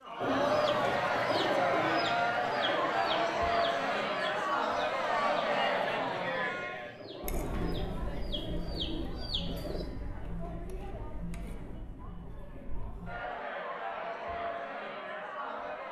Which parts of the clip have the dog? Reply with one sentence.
The dog can't be heard in this clip.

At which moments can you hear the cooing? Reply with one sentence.
The cooing can be heard from 0.2 to 9.8 s.